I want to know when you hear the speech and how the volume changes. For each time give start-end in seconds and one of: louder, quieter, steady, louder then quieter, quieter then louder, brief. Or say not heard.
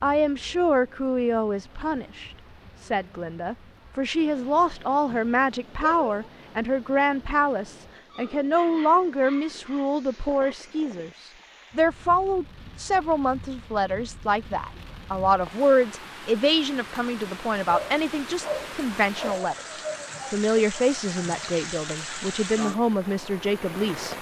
0.0-24.1 steady.